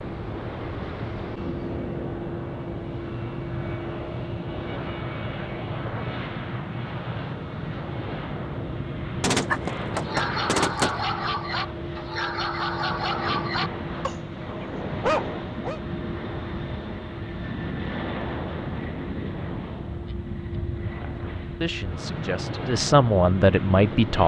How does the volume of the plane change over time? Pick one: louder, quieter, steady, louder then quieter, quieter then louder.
steady.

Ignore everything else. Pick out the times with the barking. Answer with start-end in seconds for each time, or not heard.
9.4-15.8.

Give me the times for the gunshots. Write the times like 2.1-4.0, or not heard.
9.2-11.0.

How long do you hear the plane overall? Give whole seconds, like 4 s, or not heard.
24 s.